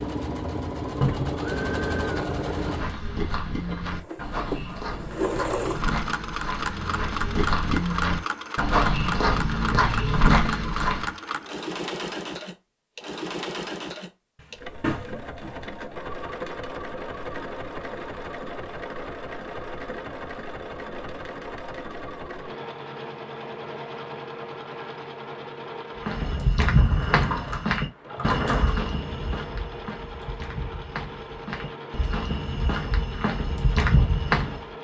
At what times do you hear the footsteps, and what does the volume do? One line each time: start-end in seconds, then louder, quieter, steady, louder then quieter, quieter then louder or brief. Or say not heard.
2.5-11.2 louder
26.1-34.6 quieter then louder.